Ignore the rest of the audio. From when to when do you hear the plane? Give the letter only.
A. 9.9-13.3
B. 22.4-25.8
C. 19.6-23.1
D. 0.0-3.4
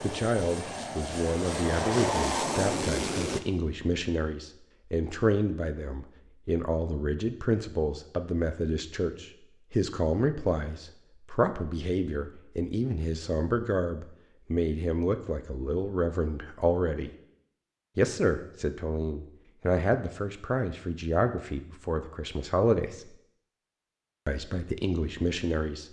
D.